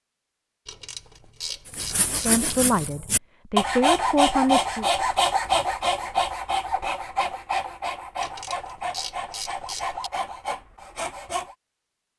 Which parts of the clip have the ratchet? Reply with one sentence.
You can hear the ratchet from 0.7 to 2.5 s and from 8.2 to 10.1 s.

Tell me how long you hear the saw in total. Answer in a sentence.
You can hear the saw for 10 seconds altogether.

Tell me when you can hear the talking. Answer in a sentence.
You can hear the talking from 2.2 to 4.8 s.